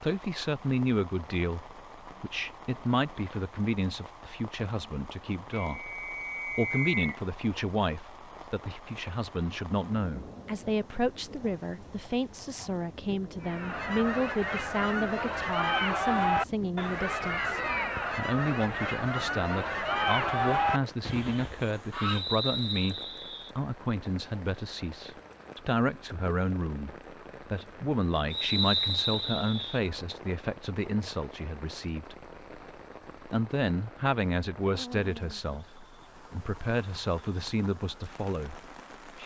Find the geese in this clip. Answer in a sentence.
The geese can be heard from 13.4 to 22.2 s.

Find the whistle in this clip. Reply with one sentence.
The whistle can be heard from 5.6 to 7.2 s, from 22.0 to 23.5 s and from 28.3 to 29.8 s.